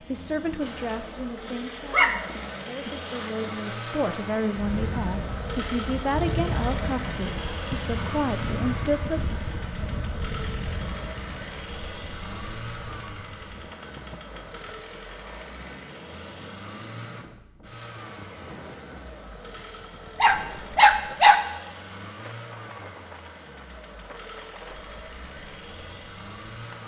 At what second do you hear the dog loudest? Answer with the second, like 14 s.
21 s.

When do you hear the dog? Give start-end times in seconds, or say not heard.
1.9-3.3, 20.2-21.4.